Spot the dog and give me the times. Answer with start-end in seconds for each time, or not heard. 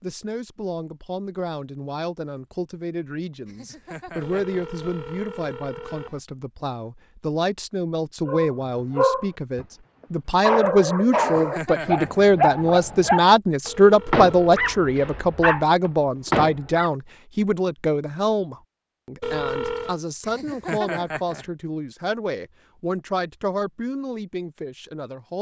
8.2-9.7, 10.4-16.9.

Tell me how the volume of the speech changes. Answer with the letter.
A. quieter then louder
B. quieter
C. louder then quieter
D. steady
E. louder
C.